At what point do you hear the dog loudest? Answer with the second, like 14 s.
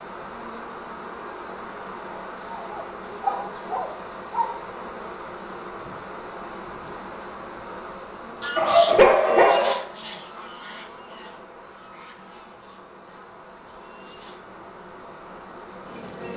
9 s.